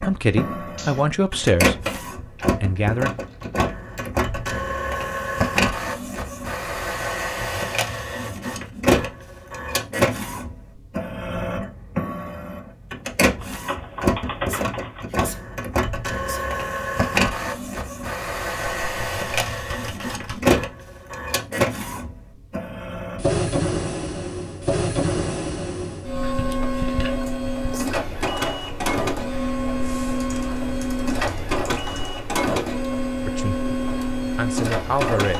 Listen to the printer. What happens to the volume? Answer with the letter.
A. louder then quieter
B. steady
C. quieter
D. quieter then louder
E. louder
B.